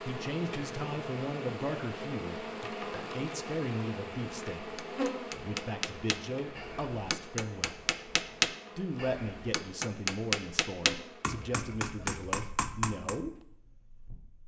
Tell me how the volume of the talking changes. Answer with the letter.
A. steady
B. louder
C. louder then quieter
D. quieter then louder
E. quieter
A.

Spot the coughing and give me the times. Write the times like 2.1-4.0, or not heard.
not heard.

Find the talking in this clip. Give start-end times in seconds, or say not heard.
0.0-7.8, 8.8-13.3.